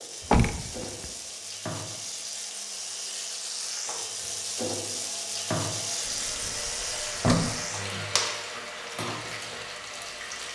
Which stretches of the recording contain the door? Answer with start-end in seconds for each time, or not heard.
0.2-1.1, 6.0-7.6.